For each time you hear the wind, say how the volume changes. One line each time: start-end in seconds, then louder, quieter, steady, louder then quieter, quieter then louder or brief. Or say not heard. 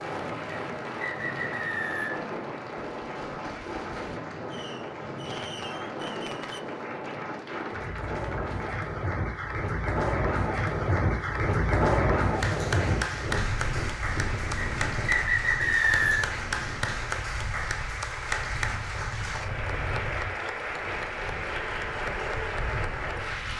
0.0-23.5 louder then quieter.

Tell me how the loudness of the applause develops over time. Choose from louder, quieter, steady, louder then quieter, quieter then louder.
louder.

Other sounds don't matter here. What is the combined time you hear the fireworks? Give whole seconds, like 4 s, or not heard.
4 s.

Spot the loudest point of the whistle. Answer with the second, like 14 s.
16 s.